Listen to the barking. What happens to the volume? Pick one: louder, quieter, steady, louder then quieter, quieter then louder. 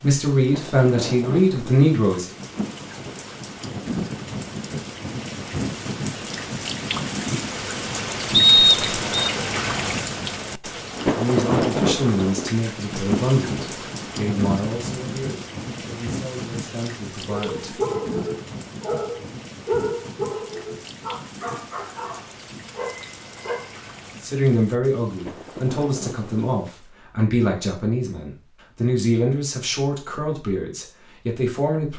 quieter.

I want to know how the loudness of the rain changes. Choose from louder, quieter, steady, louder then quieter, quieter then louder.
louder then quieter.